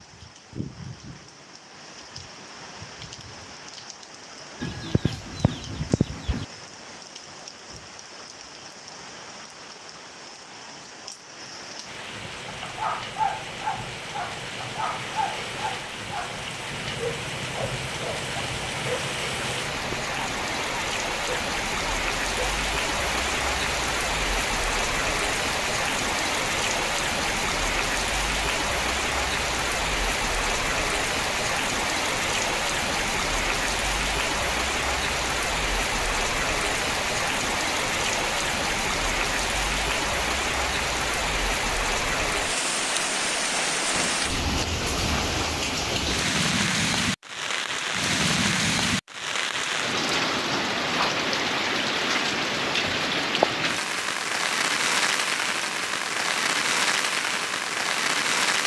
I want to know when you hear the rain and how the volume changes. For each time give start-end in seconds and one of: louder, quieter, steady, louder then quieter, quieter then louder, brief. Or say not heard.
0.0-58.6 louder.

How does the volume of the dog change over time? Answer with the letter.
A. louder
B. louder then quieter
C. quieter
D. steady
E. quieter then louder
C.